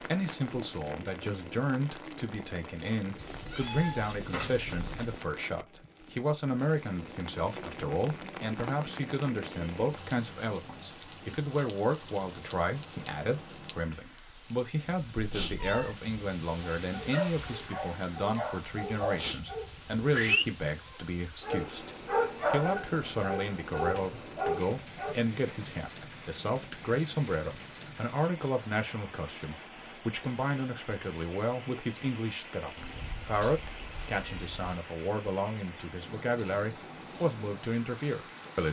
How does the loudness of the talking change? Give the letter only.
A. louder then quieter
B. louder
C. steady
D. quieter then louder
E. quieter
C.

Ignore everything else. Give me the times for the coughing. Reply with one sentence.
The coughing can't be heard in this clip.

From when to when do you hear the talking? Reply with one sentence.
You can hear the talking from 0.0 to 38.6 s.